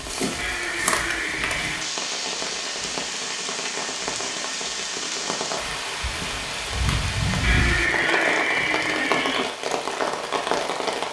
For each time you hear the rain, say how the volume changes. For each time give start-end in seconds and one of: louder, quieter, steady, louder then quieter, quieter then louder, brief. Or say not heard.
0.0-11.0 steady.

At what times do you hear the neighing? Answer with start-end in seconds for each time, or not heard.
0.3-1.9, 7.4-9.4.